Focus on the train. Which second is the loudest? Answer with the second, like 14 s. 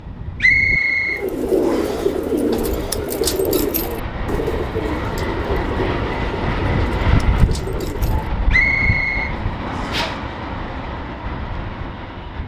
7 s.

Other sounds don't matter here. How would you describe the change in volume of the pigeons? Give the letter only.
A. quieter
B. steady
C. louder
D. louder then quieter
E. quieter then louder
A.